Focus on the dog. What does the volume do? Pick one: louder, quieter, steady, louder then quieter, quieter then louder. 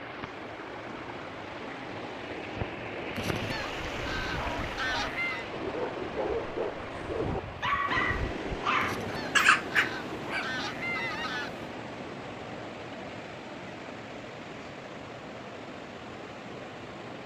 louder.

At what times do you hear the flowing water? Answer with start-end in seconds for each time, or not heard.
0.0-17.2.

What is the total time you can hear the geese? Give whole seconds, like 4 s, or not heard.
5 s.